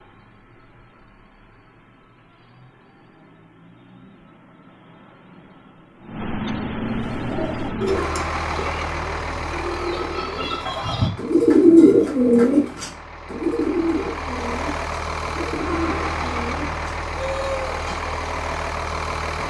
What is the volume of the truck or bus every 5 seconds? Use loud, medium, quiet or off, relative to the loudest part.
quiet, loud, medium, loud.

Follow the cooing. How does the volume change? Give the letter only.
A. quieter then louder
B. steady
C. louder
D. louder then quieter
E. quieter
D.